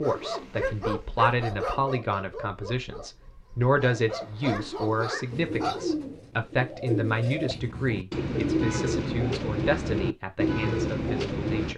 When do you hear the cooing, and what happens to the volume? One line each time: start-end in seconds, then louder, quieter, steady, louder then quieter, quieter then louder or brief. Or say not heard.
5.3-11.7 louder.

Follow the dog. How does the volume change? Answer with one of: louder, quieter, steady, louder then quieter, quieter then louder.
quieter then louder.